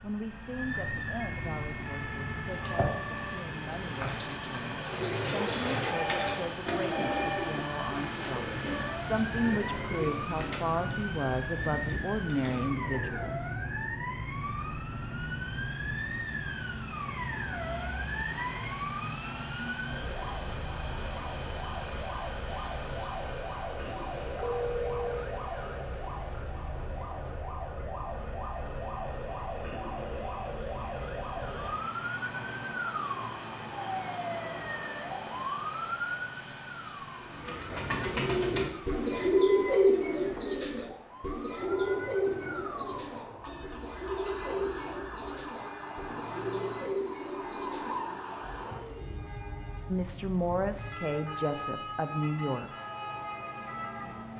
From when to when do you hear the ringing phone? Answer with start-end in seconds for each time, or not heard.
5.9-7.5, 24.4-25.2, 48.2-49.5.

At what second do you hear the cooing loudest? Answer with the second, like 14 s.
40 s.